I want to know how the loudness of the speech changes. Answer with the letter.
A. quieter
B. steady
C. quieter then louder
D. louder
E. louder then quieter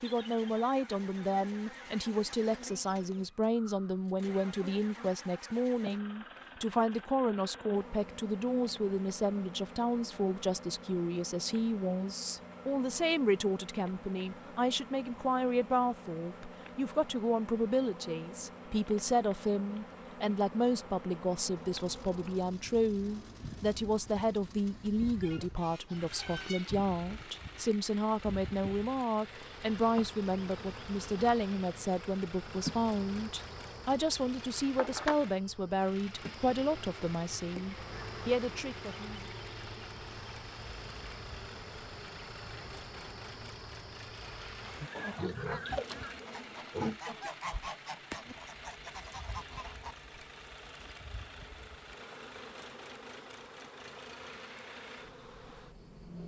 B.